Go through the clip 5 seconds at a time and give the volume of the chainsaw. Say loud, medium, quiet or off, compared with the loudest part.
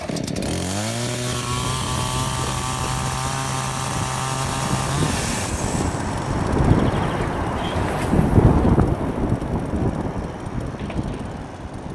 loud, medium, quiet.